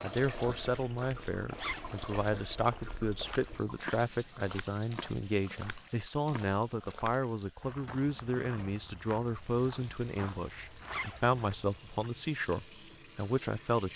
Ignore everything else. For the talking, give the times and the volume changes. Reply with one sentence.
The talking can be heard from 0.0 to 13.9 s, at a steady volume.